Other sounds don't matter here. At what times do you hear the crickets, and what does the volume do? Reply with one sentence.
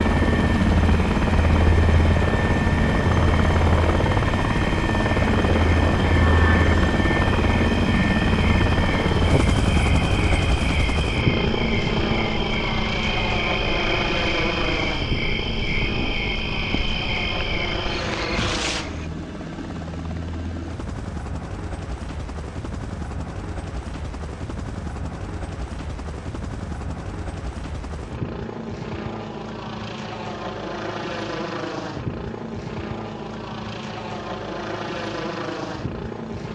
You can hear the crickets from 0.0 to 19.1 s, getting louder.